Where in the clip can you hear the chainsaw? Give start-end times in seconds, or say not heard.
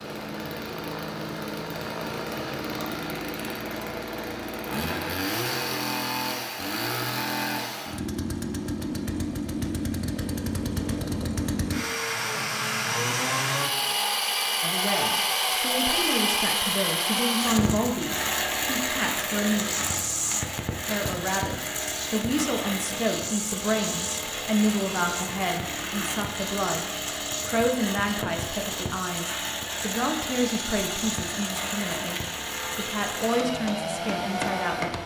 0.0-35.0.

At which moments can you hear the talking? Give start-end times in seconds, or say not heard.
14.6-19.6, 20.9-35.0.